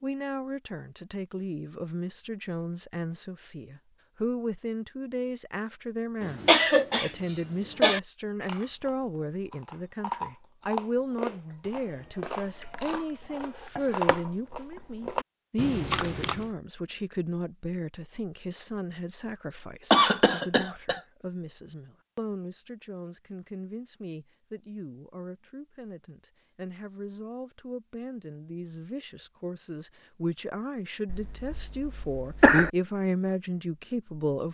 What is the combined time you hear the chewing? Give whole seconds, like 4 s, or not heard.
8 s.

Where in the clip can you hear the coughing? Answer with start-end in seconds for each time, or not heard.
6.2-8.0, 19.9-21.0, 31.1-32.7.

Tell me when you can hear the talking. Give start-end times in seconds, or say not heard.
0.0-34.4.